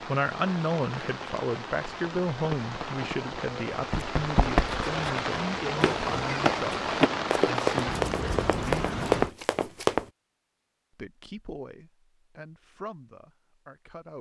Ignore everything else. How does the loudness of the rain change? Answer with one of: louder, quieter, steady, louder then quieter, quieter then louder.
louder.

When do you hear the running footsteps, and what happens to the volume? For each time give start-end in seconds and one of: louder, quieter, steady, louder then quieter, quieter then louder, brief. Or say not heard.
1.9-10.1 louder.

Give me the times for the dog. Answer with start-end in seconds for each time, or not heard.
not heard.